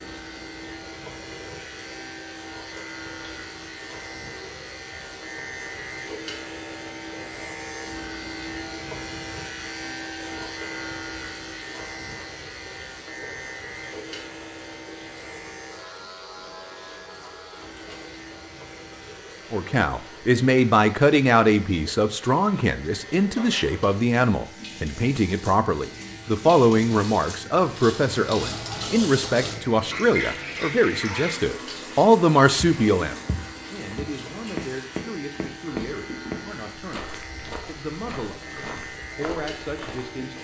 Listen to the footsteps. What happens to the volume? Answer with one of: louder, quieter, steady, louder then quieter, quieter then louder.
quieter.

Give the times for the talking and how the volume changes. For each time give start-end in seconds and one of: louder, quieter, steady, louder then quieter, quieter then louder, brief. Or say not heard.
19.5-37.0 quieter
37.6-40.3 brief.